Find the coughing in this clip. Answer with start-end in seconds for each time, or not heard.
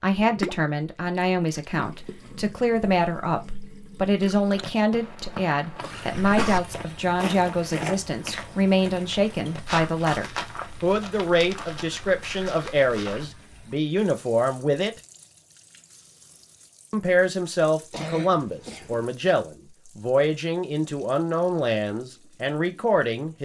6.2-6.6, 17.9-19.1.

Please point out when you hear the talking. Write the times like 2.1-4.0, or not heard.
0.0-14.9, 16.9-23.4.